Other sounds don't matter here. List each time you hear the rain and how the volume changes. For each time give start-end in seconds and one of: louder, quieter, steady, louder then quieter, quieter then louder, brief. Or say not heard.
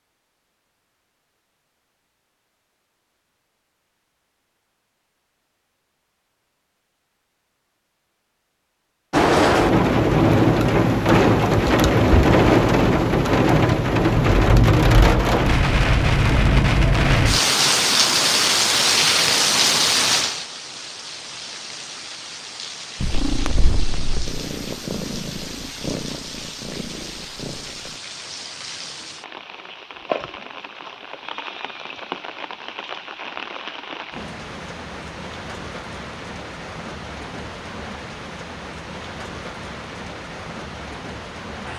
9.1-41.7 quieter.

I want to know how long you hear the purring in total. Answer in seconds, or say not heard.
5 s.